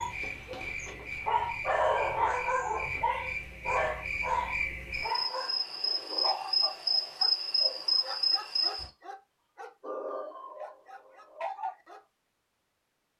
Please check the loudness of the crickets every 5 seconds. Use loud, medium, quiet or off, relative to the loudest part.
medium, loud, off.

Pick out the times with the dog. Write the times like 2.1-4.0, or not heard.
0.0-12.0.